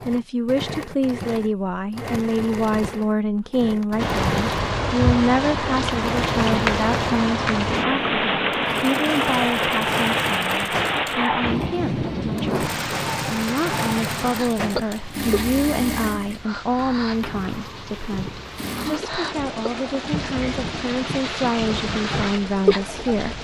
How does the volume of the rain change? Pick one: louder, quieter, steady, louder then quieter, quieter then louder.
quieter then louder.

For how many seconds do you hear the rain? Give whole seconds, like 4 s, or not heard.
19 s.